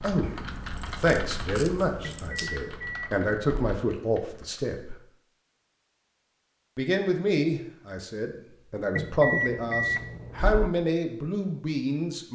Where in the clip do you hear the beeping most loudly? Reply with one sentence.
The volume of the beeping peaks at 9 seconds.